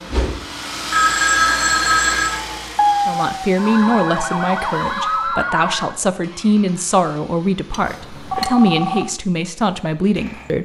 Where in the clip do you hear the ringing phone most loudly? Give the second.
1 s.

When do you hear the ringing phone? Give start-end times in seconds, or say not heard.
0.9-2.4, 7.7-9.1.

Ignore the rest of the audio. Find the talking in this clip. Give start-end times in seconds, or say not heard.
3.0-10.6.